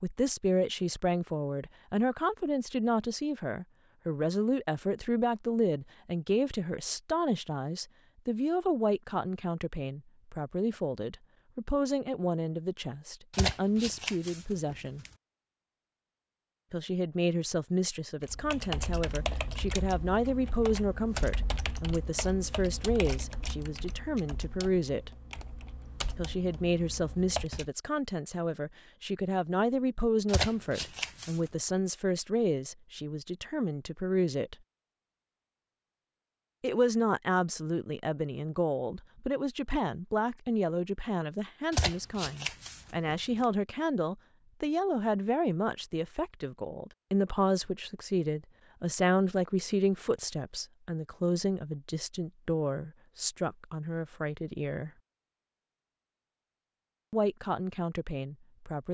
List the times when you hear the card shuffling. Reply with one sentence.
You can hear the card shuffling from 13.3 to 15.1 s, from 30.2 to 31.5 s and from 41.7 to 43.5 s.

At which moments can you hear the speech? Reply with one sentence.
The speech can be heard from 0.0 to 15.1 s, from 16.7 to 25.1 s, from 26.1 to 34.5 s, from 36.6 to 54.9 s and from 57.1 to 58.8 s.